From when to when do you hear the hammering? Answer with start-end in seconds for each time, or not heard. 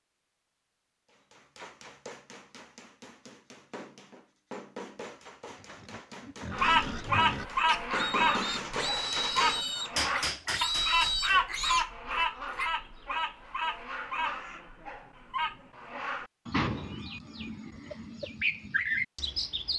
1.1-11.4.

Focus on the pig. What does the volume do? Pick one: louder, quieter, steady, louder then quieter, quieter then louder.
louder.